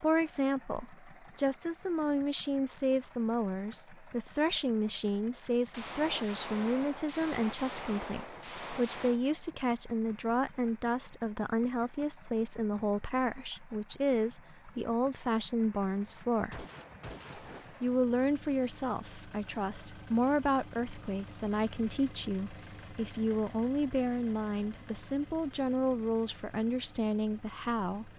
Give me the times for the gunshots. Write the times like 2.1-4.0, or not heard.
5.7-9.2, 16.5-18.0.